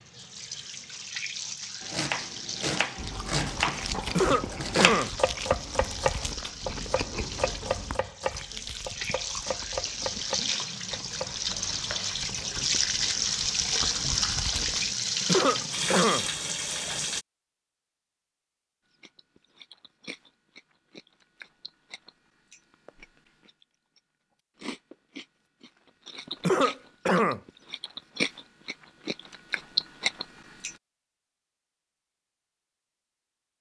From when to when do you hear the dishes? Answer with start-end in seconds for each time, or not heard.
not heard.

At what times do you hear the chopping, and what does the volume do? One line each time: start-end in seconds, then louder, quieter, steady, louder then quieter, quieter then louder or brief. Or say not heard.
1.8-12.2 quieter.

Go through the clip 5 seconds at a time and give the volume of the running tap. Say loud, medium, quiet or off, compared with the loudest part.
medium, medium, loud, loud, off, off, off.